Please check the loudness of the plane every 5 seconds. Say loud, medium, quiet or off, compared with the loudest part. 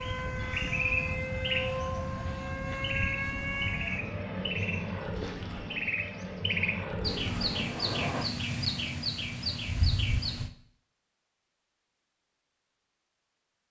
loud, loud, off.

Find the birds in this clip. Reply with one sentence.
You can hear the birds from 0.0 to 10.5 s.